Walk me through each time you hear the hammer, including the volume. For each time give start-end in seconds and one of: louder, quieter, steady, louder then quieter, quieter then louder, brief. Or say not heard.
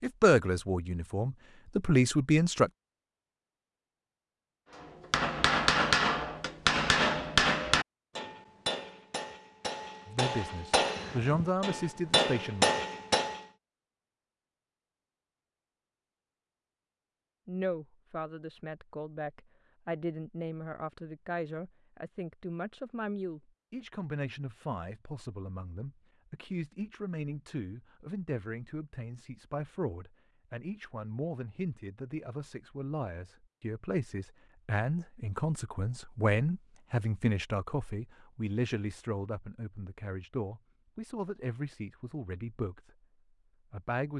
5.1-13.4 quieter then louder.